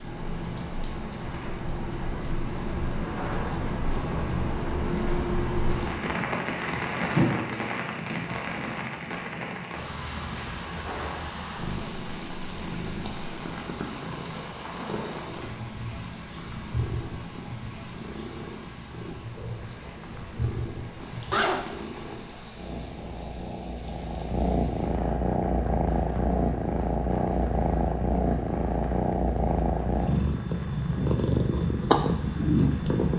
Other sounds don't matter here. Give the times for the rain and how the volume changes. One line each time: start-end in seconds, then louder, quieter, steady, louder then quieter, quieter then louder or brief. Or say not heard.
0.0-33.1 quieter.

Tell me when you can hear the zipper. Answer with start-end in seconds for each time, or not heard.
21.3-22.1.